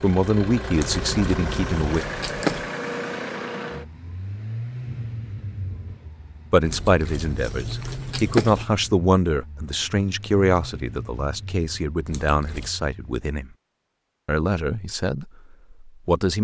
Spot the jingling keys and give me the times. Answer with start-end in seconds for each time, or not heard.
0.7-2.7, 6.6-8.7, 12.1-12.8.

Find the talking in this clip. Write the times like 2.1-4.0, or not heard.
0.0-2.0, 6.5-13.5, 14.2-16.4.